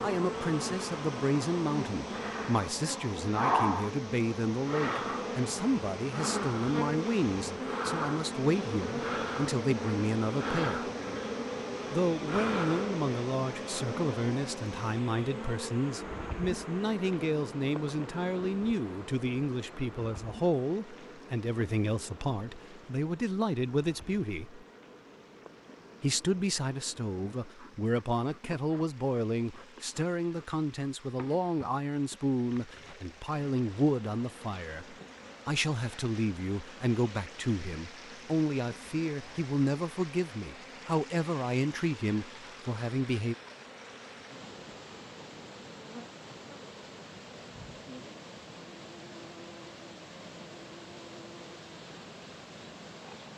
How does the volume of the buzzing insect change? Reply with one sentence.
The loudness of the buzzing insect goes down.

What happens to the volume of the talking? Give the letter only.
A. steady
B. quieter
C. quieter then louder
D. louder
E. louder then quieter
A.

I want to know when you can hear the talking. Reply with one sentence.
The talking can be heard from 0.0 to 10.9 s, from 11.9 to 24.6 s and from 26.0 to 43.4 s.